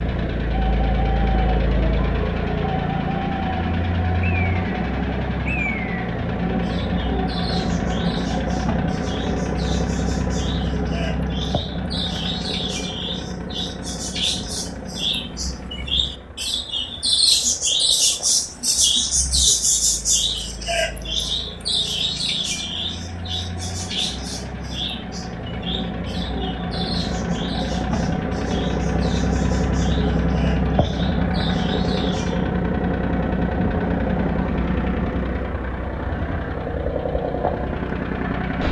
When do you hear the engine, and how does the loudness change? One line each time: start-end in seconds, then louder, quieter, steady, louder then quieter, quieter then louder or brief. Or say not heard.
0.0-38.6 quieter then louder.